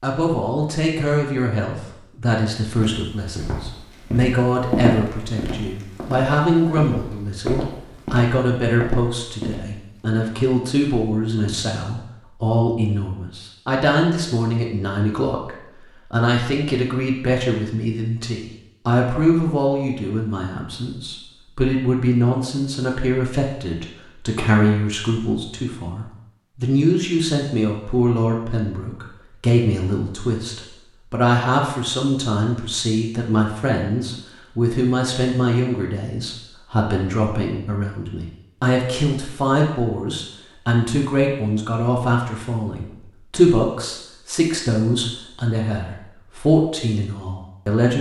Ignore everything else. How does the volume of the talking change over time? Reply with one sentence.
The volume of the talking stays about the same.